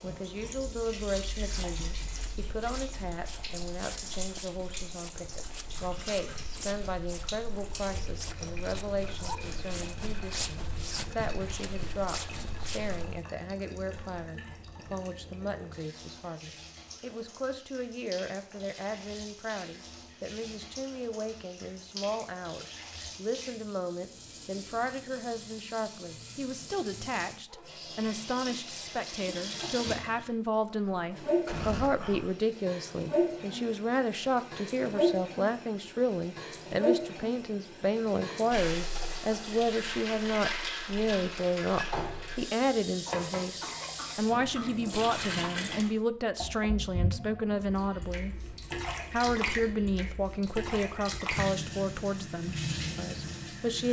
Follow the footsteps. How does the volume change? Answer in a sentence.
The volume of the footsteps goes up.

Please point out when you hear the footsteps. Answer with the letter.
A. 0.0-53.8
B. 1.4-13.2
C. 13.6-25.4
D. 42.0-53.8
B.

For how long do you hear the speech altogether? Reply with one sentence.
The speech can be heard for 54 seconds in total.